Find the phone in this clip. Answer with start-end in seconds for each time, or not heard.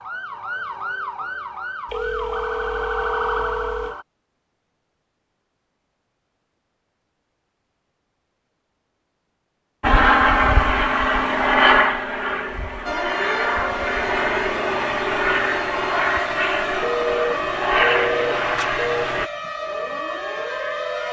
1.9-4.0, 16.8-19.1.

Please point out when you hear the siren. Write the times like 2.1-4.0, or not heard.
0.0-4.0, 12.8-21.0.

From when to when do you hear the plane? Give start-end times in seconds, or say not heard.
9.8-19.3.